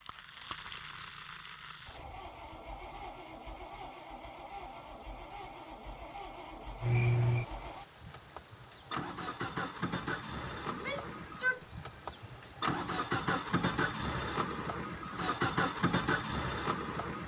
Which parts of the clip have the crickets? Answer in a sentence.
The crickets can be heard from 6.8 to 17.2 s.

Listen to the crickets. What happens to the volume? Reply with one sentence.
The volume of the crickets stays about the same.